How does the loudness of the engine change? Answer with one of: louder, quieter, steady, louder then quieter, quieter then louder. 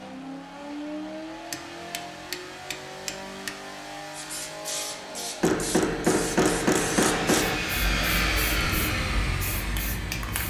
louder.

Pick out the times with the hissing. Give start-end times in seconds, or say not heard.
4.1-10.4.